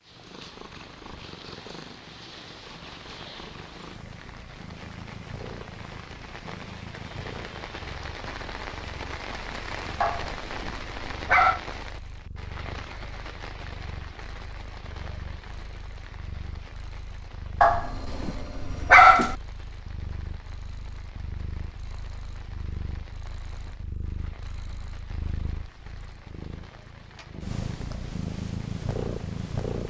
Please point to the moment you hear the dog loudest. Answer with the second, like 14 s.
19 s.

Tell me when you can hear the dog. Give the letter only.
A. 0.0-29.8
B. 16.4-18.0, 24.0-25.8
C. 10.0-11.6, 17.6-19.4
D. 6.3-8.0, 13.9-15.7
C.